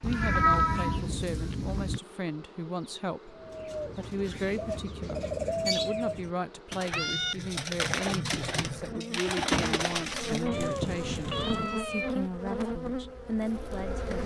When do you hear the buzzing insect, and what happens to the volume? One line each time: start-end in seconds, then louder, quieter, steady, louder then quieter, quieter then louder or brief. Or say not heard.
0.0-14.2 louder.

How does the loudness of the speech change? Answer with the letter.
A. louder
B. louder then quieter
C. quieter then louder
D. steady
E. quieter
D.